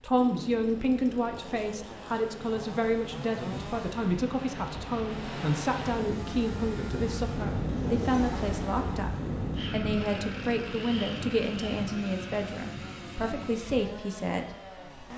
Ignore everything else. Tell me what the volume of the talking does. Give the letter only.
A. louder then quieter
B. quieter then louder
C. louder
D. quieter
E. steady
E.